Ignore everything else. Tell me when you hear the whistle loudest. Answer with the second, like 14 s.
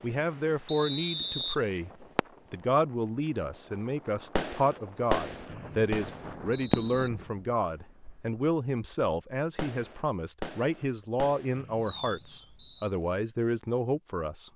1 s.